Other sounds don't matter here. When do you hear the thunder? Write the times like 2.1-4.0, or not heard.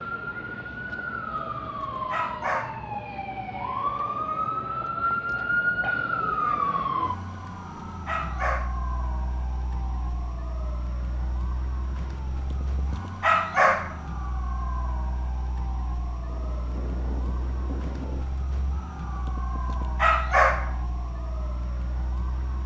16.2-18.2.